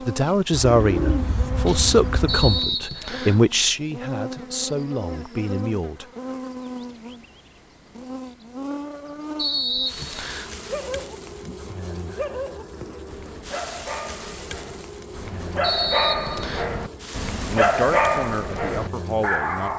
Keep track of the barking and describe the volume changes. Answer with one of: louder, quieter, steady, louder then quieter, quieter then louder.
louder.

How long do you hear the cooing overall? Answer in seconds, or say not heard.
2 s.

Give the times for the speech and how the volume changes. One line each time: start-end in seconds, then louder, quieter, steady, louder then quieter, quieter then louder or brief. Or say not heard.
0.1-6.0 quieter
17.4-19.7 brief.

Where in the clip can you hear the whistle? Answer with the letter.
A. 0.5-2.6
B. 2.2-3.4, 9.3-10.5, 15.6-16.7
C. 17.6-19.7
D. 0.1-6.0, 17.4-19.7
B.